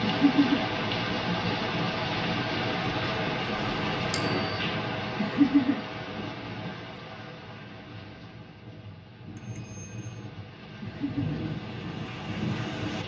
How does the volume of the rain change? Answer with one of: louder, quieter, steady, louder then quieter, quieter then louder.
quieter then louder.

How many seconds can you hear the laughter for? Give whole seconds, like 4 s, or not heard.
2 s.